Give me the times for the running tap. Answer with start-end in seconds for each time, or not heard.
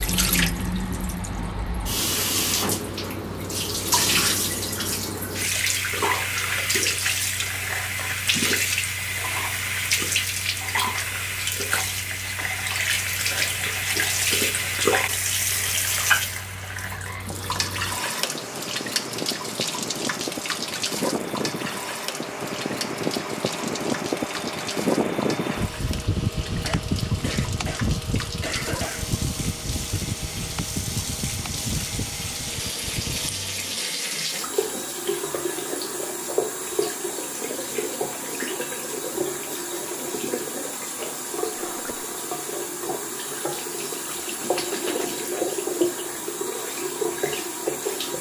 0.0-48.1.